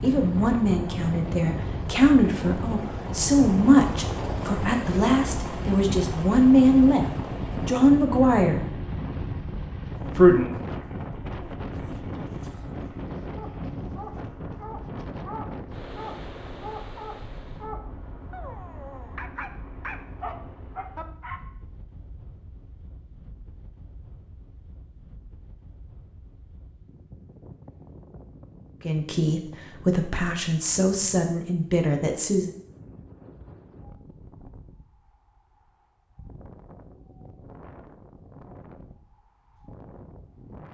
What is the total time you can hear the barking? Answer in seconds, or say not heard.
8 s.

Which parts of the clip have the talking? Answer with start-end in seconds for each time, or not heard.
0.0-8.6, 10.1-10.6, 28.8-32.5.